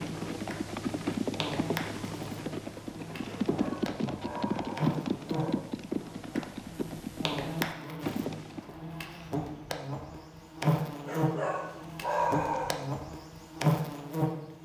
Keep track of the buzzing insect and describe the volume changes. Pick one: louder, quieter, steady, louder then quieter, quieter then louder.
louder.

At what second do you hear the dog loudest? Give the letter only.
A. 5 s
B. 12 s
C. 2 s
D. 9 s
B.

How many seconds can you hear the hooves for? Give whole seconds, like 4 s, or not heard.
9 s.